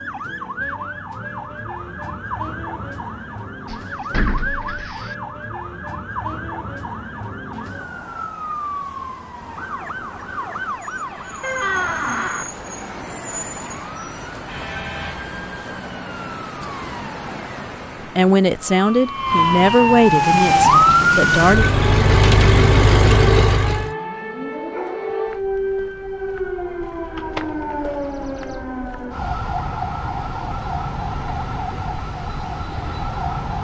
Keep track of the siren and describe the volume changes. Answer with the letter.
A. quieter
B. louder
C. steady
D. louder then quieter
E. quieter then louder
D.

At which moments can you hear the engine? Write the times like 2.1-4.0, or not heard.
20.0-23.9.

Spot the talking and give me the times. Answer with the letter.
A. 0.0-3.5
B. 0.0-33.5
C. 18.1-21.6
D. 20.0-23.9
C.